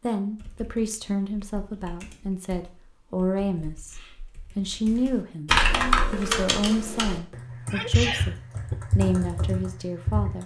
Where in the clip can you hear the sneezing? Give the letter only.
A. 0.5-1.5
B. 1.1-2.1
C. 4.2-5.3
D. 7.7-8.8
D.